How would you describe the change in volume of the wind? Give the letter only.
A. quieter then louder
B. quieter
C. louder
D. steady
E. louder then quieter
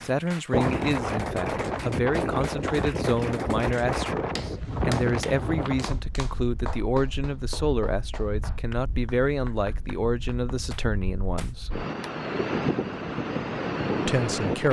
A.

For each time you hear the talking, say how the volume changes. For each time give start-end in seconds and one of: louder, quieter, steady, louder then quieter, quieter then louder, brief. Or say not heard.
0.0-11.7 steady
14.1-14.6 brief.